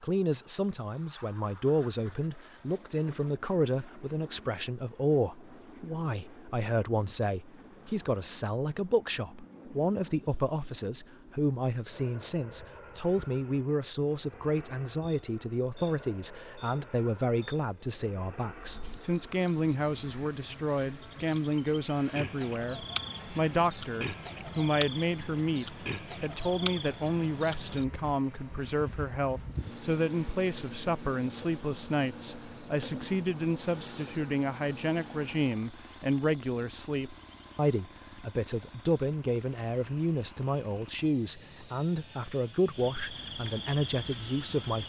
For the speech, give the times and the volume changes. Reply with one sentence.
The speech can be heard from 0.0 to 44.8 s, at a steady volume.